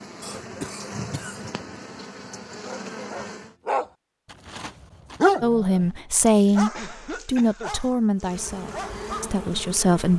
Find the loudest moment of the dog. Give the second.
5 s.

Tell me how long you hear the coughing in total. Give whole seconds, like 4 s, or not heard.
2 s.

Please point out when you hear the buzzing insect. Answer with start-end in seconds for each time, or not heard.
0.0-3.5, 8.2-10.1.